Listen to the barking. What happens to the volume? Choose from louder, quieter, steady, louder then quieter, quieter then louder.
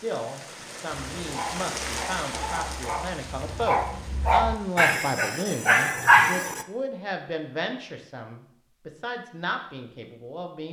louder.